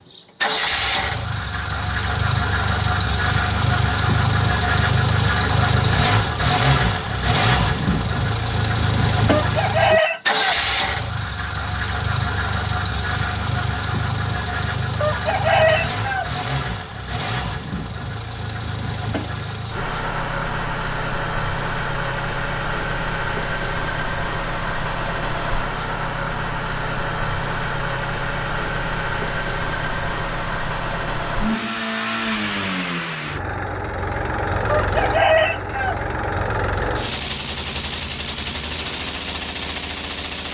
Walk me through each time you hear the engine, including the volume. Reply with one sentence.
The engine can be heard from 0.1 to 40.4 s, getting quieter.